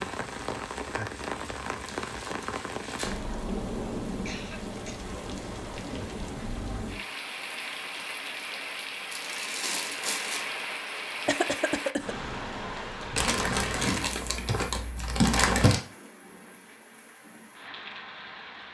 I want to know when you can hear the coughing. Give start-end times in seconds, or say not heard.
4.2-5.0, 11.2-12.2.